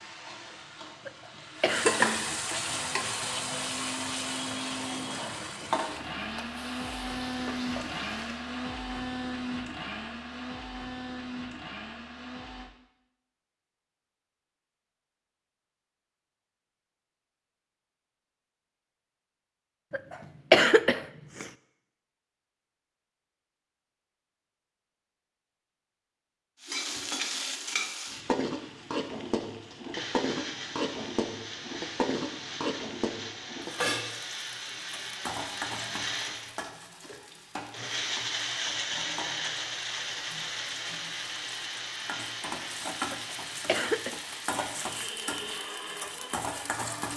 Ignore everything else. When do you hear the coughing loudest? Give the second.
21 s.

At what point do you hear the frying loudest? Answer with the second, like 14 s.
2 s.